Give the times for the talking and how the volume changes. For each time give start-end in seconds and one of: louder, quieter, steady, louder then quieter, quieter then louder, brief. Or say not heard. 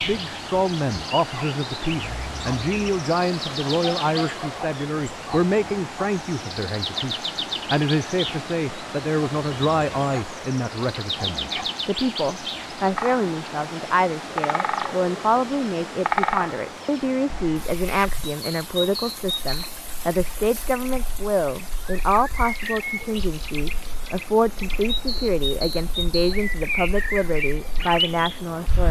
0.0-28.8 steady.